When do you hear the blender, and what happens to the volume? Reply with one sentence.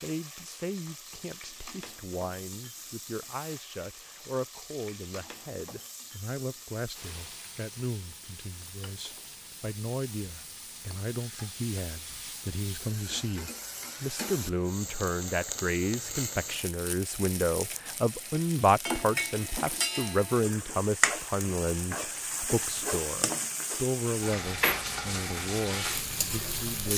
The blender can't be heard in this clip.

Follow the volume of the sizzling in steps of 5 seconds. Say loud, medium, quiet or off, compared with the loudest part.
quiet, quiet, medium, loud, loud, loud.